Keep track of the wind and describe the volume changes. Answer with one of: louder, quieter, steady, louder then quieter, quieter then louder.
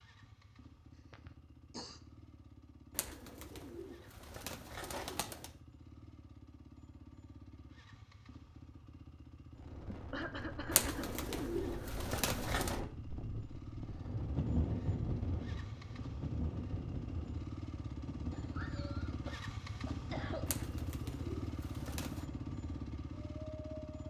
louder then quieter.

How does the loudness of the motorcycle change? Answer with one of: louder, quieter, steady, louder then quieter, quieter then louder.
louder.